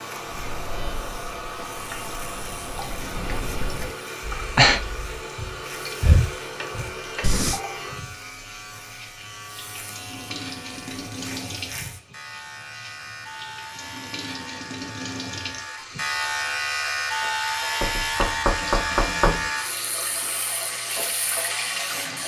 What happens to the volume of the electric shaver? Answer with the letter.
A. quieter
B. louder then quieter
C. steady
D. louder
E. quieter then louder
D.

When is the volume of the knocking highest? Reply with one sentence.
The volume of the knocking peaks at 19 seconds.